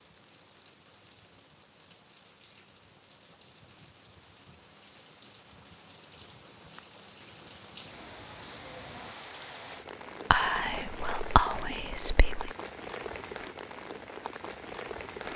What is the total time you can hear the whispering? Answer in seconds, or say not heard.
2 s.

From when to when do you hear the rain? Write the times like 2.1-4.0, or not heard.
0.0-15.3.